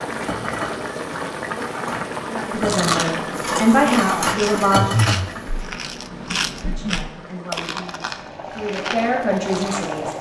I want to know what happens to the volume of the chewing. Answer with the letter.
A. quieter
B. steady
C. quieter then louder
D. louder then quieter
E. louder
D.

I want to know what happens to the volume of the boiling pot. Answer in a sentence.
The volume of the boiling pot goes down, then up.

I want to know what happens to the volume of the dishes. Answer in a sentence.
The volume of the dishes goes up.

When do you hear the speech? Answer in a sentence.
You can hear the speech from 2.3 to 5.0 s and from 6.5 to 10.1 s.